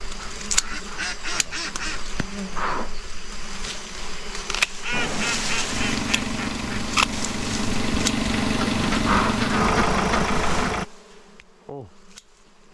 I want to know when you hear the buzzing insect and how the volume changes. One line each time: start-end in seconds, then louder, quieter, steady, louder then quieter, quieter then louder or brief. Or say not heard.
0.0-12.6 quieter.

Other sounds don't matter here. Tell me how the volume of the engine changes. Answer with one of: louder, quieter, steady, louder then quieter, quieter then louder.
louder.